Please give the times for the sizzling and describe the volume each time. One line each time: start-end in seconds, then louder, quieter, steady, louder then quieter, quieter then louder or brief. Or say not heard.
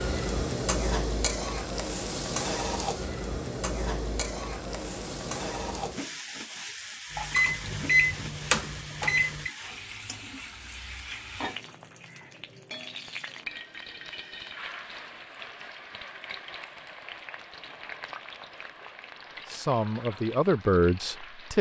0.0-21.5 quieter.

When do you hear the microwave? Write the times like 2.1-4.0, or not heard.
7.1-9.5.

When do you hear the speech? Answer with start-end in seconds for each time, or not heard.
19.4-21.5.